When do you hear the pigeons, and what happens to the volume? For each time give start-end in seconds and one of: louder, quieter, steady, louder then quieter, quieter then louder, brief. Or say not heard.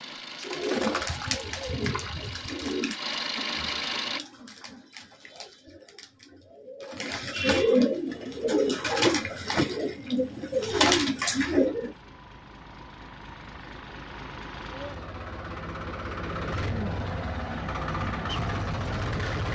0.4-11.9 quieter then louder.